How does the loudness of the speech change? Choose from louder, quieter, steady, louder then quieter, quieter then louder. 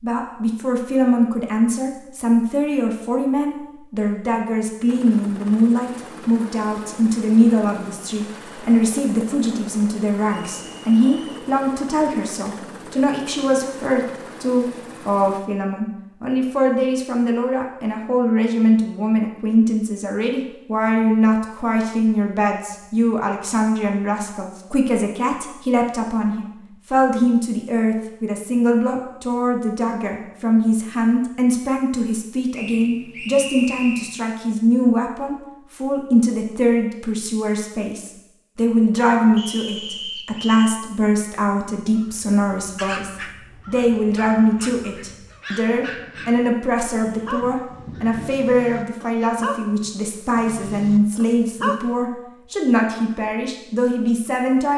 steady.